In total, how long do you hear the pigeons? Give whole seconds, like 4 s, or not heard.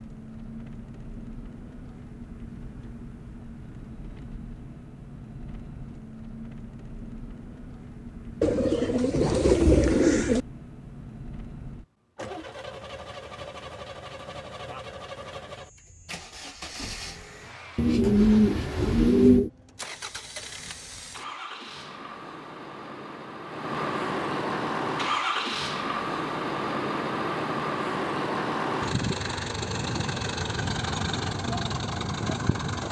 4 s.